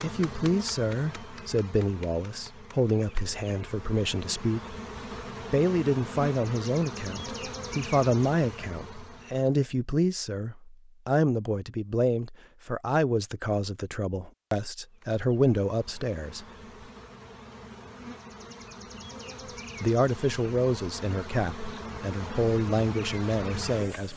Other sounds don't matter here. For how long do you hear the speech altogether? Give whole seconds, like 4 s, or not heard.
20 s.